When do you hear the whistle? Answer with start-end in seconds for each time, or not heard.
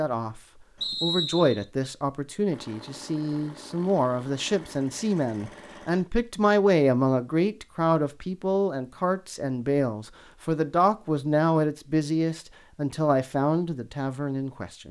0.8-1.6.